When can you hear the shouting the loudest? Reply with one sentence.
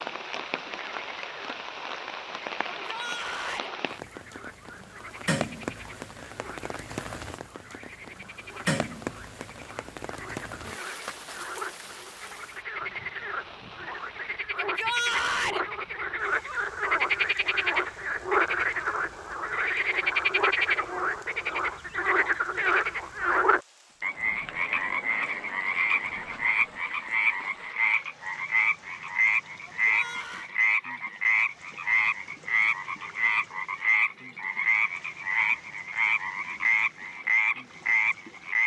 The volume of the shouting peaks at 15 seconds.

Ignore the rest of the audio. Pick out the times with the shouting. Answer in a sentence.
The shouting can be heard from 2.7 to 3.7 s, from 14.6 to 15.7 s and from 29.6 to 30.5 s.